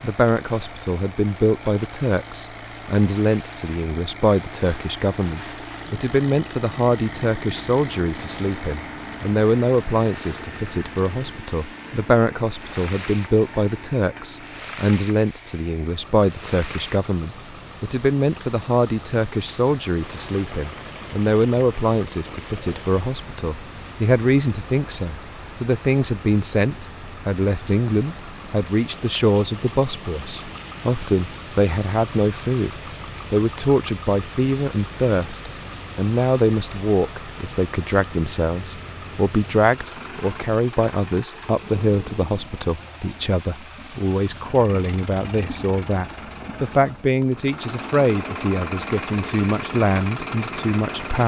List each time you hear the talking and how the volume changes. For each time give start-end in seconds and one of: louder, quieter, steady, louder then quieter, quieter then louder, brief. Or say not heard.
0.0-51.2 steady.